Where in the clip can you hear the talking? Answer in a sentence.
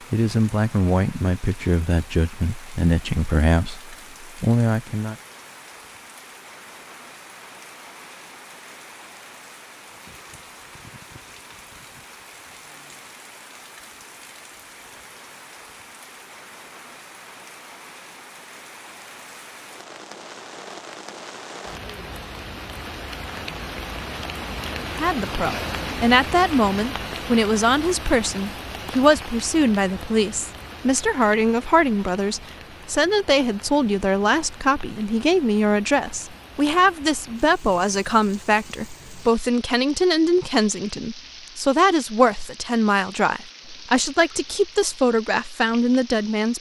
The talking can be heard from 0.1 to 5.2 s and from 24.8 to 46.5 s.